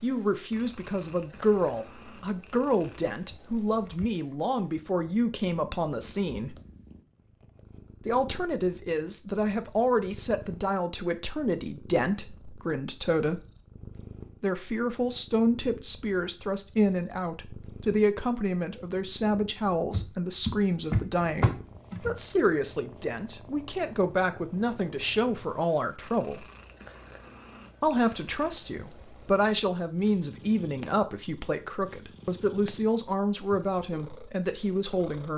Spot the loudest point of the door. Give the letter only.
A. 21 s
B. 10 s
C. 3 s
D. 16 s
A.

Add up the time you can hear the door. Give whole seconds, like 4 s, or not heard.
2 s.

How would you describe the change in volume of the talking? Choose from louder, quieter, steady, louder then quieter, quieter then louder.
steady.